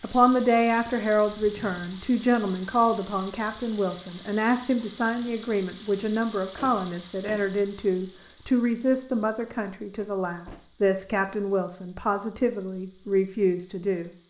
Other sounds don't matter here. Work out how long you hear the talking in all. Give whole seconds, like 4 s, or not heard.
14 s.